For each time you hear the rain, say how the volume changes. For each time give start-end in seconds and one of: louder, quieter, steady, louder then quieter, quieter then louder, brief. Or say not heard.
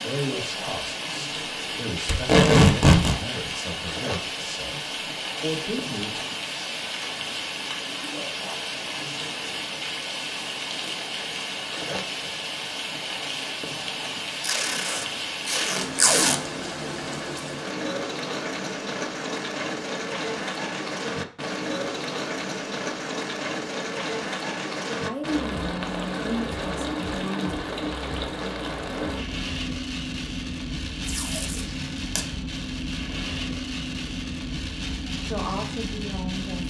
0.0-36.6 steady.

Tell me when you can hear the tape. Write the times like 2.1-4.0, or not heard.
2.0-3.1, 14.4-16.4, 31.1-32.2.